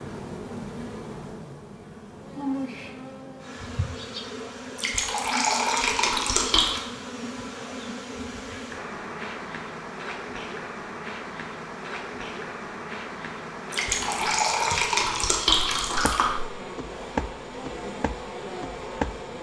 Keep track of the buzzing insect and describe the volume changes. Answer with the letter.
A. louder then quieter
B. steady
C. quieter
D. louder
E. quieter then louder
B.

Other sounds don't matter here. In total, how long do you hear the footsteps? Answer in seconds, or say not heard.
3 s.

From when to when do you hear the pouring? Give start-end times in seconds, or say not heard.
4.8-6.8, 13.7-16.4.